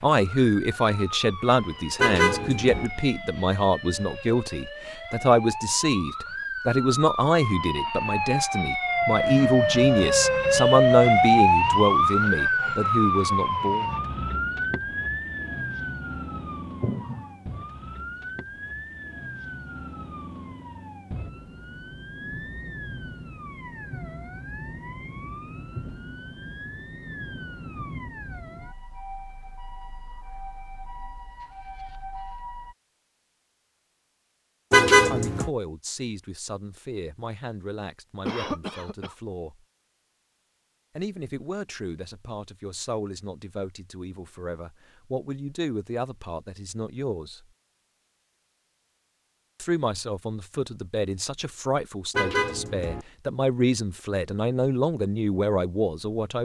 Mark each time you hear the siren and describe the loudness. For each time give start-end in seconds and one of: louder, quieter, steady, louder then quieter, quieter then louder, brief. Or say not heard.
0.1-32.8 louder then quieter.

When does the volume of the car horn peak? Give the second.
35 s.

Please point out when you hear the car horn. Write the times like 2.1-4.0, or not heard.
1.9-2.9, 34.7-35.5, 52.1-53.0.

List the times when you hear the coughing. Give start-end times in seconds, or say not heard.
16.8-17.2, 38.2-39.1.